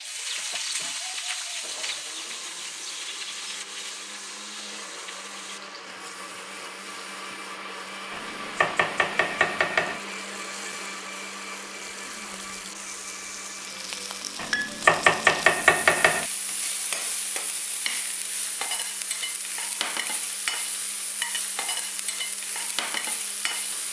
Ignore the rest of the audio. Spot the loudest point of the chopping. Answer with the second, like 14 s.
15 s.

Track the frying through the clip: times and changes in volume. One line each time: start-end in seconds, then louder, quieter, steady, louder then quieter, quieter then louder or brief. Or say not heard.
0.0-23.8 quieter then louder.